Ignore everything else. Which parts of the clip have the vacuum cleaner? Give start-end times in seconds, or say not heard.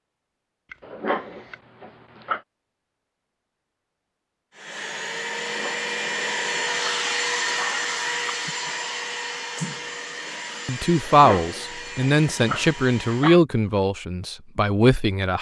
4.5-13.4.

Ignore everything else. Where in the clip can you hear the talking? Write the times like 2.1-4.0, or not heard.
10.7-15.3.